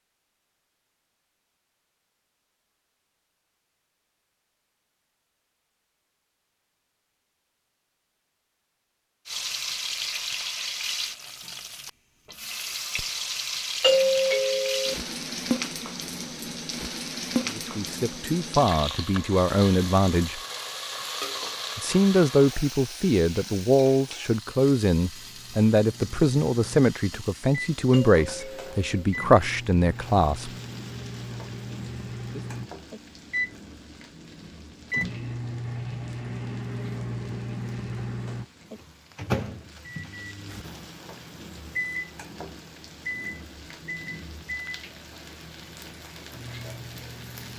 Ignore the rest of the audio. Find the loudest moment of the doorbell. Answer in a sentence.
The loudest moment of the doorbell is at 14 seconds.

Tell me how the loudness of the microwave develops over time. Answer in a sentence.
The volume of the microwave goes up, then down.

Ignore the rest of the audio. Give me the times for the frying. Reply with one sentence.
The frying can be heard from 9.2 to 47.5 s.